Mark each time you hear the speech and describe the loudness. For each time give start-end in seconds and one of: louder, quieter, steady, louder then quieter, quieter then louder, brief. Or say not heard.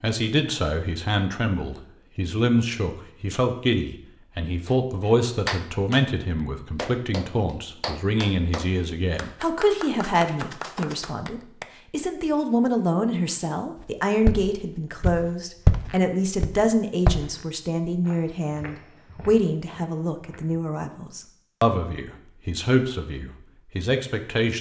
0.0-24.5 steady.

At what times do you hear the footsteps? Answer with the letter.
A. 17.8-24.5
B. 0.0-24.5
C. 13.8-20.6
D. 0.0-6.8
C.